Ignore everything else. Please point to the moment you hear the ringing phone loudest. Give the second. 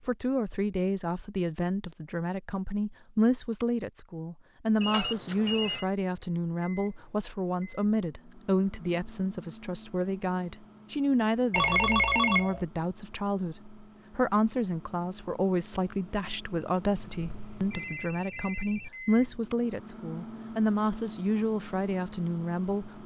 12 s.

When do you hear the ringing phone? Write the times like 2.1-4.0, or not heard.
4.8-5.8, 11.5-12.7, 17.1-18.9.